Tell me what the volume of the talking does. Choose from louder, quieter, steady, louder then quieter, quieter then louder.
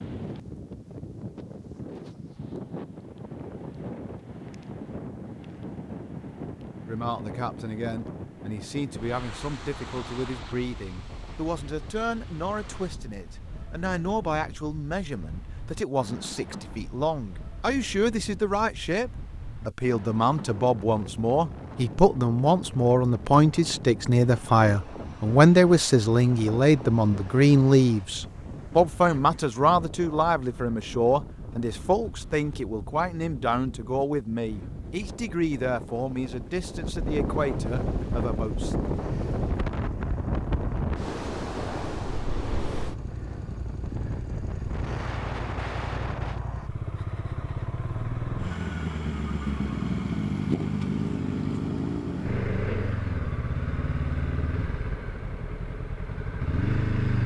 louder then quieter.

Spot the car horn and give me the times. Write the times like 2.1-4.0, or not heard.
not heard.